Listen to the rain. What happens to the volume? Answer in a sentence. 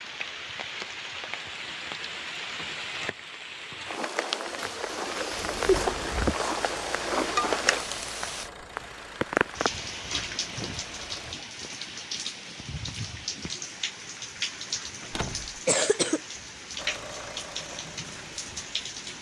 The loudness of the rain goes up, then down.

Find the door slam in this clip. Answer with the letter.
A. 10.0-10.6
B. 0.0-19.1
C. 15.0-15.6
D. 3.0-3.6
C.